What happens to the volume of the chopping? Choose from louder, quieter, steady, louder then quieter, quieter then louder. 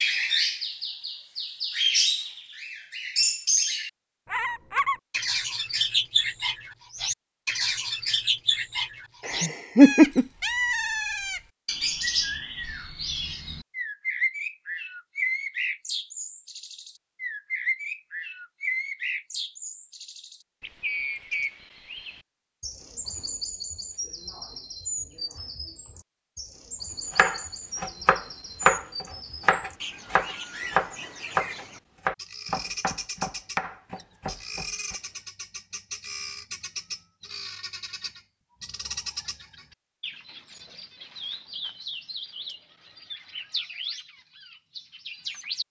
quieter.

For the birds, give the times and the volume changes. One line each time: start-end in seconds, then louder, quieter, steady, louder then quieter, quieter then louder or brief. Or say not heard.
0.0-45.6 quieter.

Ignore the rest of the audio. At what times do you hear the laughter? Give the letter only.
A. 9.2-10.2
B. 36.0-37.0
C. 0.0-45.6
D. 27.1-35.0
A.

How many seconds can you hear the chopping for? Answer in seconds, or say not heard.
8 s.